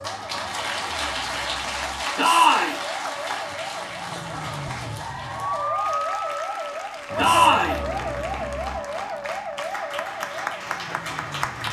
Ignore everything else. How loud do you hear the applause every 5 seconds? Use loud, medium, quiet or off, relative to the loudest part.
loud, medium, loud.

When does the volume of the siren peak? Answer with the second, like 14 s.
6 s.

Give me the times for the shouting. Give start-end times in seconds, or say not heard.
2.1-2.8, 7.2-7.8.